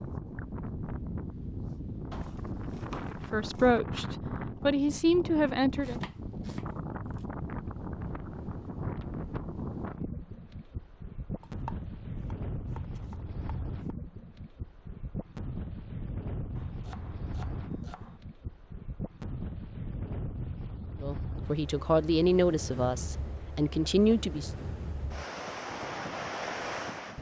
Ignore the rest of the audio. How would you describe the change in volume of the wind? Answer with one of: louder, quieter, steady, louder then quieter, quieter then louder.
steady.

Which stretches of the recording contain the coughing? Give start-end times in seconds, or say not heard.
not heard.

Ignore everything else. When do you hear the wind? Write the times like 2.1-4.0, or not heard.
0.0-27.1.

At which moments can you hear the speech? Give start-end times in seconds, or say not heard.
3.3-6.0, 21.0-24.5.